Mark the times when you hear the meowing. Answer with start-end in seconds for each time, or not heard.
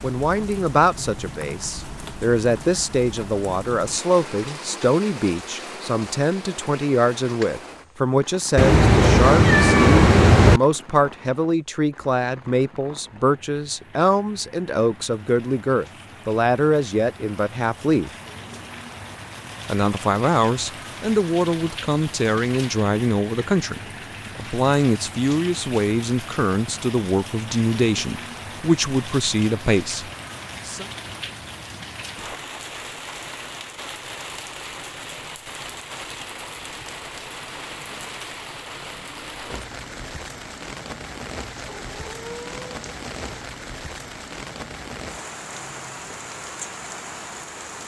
8.6-10.6, 41.5-43.5.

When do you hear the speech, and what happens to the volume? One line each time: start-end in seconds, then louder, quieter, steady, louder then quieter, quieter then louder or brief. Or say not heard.
0.0-18.1 steady
19.6-30.9 steady.